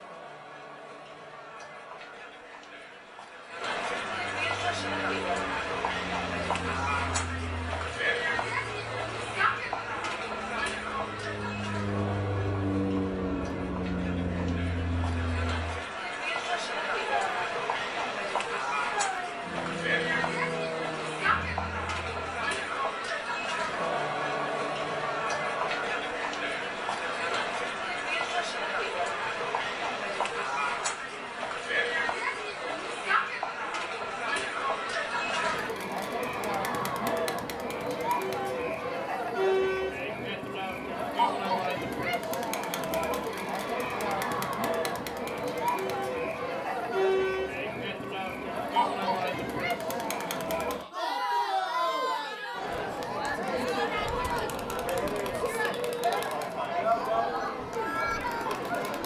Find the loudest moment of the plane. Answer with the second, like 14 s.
13 s.